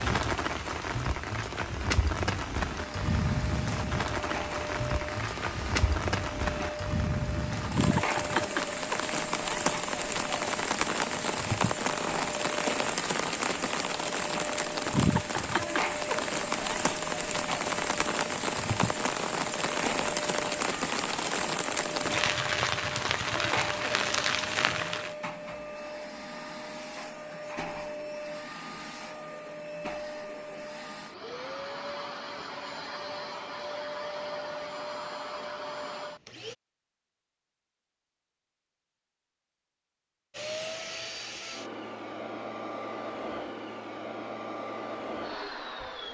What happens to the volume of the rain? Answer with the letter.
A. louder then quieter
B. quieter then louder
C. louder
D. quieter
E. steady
E.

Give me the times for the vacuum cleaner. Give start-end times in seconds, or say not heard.
2.8-36.5, 40.3-46.0.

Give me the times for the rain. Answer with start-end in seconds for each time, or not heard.
0.0-25.1.